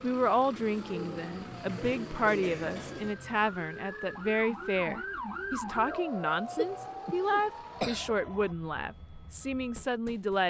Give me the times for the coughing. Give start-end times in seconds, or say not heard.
1.6-3.1, 6.5-8.2.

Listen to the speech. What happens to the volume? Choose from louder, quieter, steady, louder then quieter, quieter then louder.
steady.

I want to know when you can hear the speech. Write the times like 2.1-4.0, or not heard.
0.0-10.4.